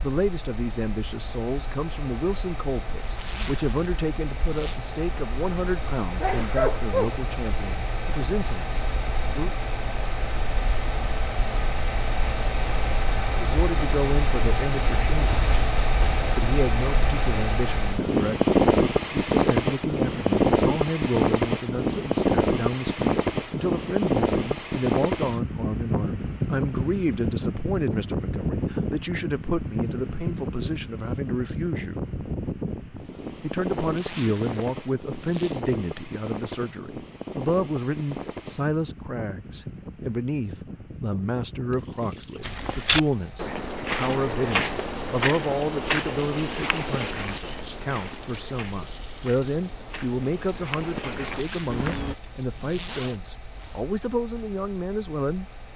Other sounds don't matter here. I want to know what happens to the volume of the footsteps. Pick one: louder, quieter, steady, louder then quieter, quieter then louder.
quieter then louder.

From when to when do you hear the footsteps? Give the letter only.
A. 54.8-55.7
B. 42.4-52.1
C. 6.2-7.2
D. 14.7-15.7
B.